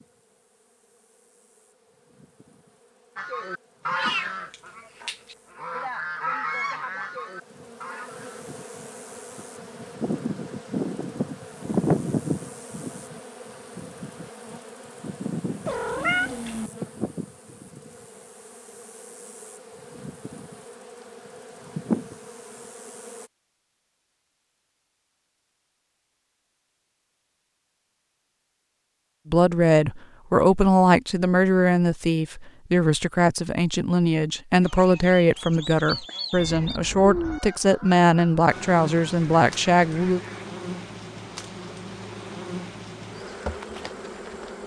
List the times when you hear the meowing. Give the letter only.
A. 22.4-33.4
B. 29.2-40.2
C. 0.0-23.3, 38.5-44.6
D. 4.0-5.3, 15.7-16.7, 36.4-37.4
D.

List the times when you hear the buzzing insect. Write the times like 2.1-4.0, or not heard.
0.0-23.3, 38.5-44.6.